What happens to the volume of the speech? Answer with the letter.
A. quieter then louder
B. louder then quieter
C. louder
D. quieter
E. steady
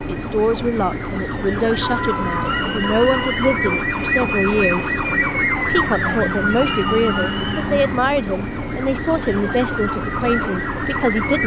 E.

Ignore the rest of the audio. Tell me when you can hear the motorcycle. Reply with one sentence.
You can't hear the motorcycle here.